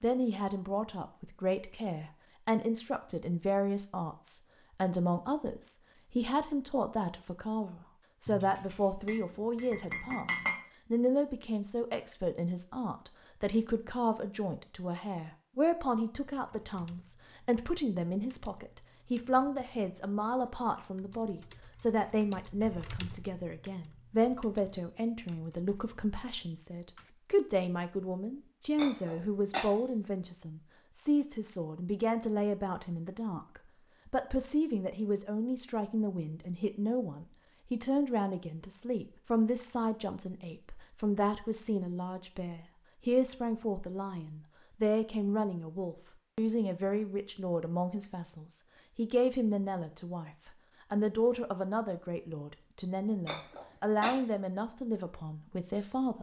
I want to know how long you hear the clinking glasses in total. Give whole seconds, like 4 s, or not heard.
4 s.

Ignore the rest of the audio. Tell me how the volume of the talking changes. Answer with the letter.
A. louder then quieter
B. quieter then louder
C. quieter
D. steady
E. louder
D.